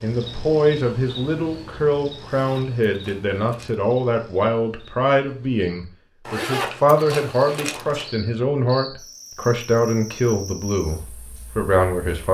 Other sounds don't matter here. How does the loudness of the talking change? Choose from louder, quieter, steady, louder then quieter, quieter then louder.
steady.